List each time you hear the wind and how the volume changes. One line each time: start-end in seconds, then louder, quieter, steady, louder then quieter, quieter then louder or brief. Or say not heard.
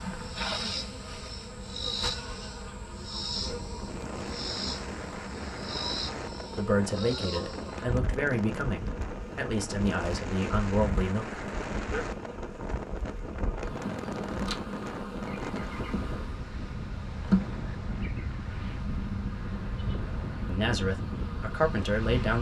3.3-22.3 steady.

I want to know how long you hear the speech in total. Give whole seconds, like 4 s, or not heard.
7 s.